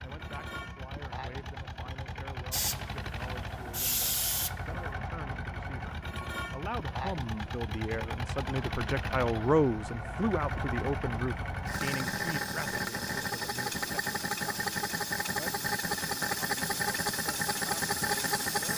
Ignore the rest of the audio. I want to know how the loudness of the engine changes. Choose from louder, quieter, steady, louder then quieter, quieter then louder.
louder.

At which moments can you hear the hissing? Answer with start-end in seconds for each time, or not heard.
2.5-4.6.